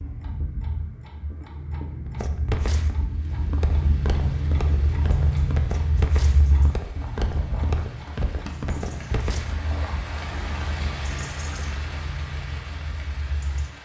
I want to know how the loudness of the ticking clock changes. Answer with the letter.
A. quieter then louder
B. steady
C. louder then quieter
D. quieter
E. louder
C.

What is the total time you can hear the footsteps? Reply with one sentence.
The footsteps can be heard for 8 seconds in total.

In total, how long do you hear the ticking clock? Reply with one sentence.
You can hear the ticking clock for 14 seconds altogether.